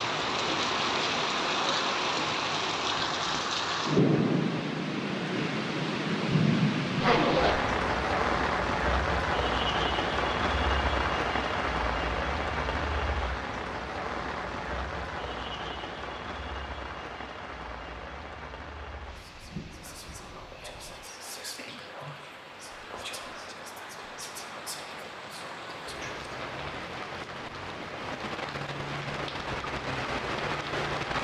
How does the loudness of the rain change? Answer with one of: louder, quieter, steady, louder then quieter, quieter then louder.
quieter then louder.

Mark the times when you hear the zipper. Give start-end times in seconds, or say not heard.
7.0-7.6.